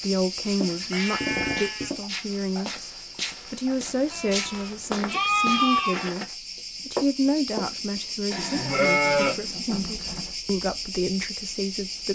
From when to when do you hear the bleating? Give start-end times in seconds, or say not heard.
0.6-2.0, 4.1-6.1, 8.3-10.3.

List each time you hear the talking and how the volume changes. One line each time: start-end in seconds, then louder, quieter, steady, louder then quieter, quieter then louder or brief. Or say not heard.
0.0-12.1 steady.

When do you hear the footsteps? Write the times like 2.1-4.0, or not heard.
0.0-8.0.